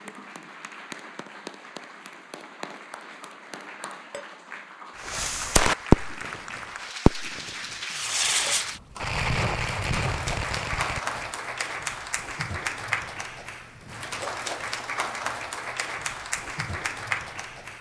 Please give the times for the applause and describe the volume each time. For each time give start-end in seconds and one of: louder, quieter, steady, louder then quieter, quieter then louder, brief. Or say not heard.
0.0-17.7 louder.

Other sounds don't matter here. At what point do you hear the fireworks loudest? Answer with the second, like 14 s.
6 s.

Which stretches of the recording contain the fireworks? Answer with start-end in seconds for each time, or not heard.
5.0-6.4, 7.0-11.3.